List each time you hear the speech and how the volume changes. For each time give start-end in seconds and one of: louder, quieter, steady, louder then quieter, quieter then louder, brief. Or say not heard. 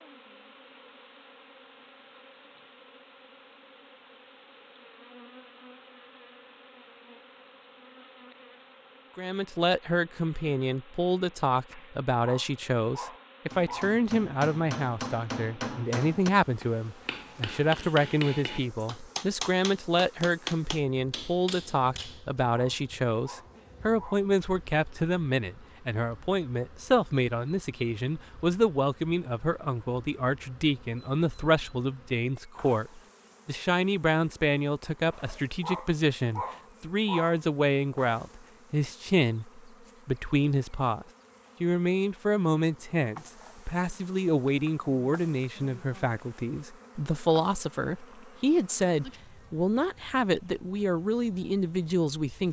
9.2-52.4 steady.